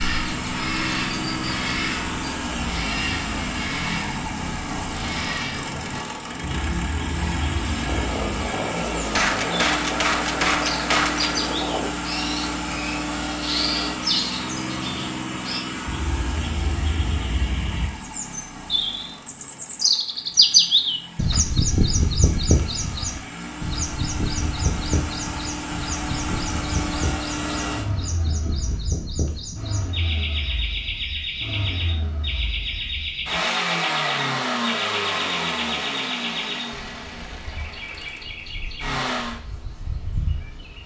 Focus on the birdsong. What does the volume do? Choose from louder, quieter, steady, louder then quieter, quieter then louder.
louder then quieter.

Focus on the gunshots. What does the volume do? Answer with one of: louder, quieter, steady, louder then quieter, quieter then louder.
louder.